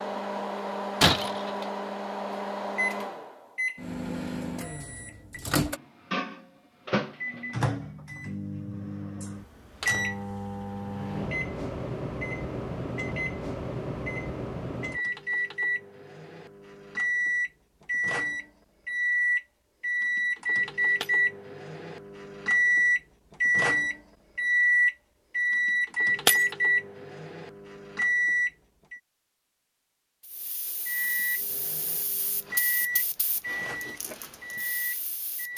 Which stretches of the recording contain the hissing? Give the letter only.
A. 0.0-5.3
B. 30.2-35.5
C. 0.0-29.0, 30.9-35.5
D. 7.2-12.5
B.